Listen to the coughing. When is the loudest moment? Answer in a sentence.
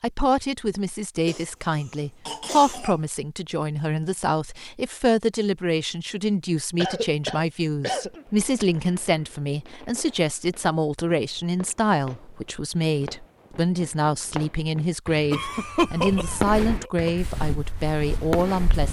The volume of the coughing peaks at 16 seconds.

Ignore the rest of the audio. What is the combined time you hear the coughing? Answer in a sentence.
The coughing can be heard for 5 seconds in total.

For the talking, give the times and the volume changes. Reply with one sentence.
The talking can be heard from 0.0 to 18.8 s, at a steady volume.